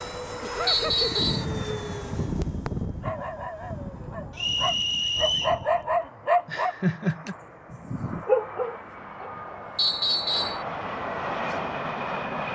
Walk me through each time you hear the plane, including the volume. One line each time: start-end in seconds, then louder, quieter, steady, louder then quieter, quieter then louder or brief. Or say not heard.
0.0-12.5 quieter then louder.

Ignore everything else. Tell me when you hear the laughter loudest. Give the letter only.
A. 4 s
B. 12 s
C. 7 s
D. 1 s
C.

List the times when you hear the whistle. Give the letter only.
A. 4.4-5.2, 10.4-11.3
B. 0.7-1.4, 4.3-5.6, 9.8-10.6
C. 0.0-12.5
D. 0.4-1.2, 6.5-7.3
B.